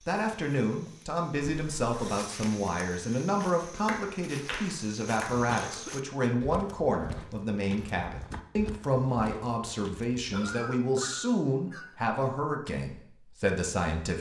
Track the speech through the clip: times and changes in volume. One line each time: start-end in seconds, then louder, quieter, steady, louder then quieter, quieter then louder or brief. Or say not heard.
0.1-14.1 steady.